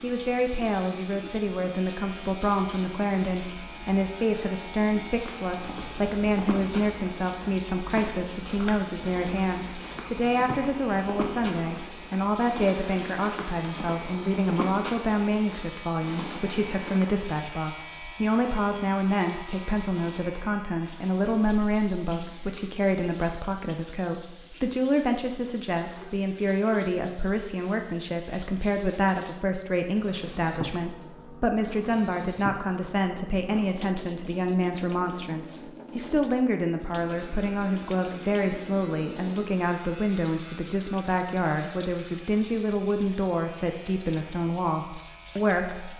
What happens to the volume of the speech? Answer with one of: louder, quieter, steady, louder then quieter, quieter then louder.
steady.